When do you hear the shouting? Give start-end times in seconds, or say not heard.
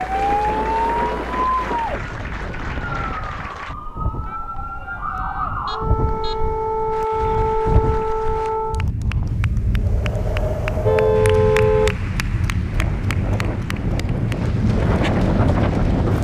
4.2-5.5.